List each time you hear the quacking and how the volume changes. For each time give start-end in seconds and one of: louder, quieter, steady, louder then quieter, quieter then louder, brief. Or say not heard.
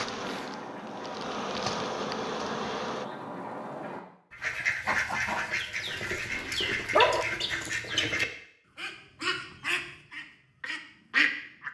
0.1-11.6 louder.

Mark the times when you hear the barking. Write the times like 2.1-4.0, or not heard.
6.0-7.2.